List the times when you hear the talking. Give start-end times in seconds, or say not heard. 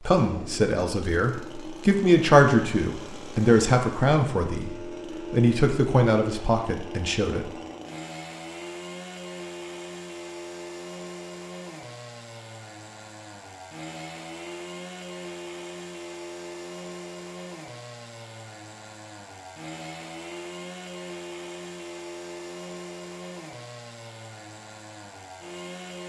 0.1-7.5.